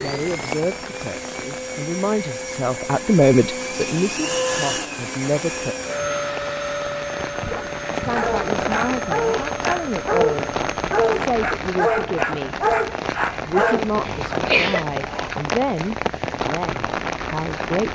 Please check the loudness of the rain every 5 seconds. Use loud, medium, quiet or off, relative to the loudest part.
medium, loud, loud, loud.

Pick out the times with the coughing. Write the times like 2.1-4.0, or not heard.
14.1-14.8.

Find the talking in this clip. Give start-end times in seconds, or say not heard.
0.0-5.8, 8.0-10.5, 11.2-12.6, 13.3-17.8.